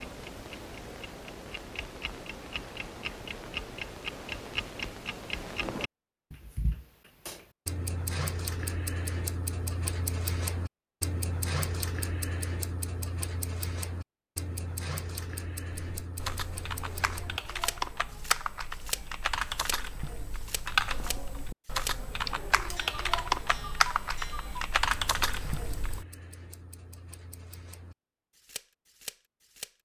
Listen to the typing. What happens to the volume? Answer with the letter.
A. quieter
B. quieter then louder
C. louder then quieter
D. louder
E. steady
D.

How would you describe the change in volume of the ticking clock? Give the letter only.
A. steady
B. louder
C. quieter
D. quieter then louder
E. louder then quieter
C.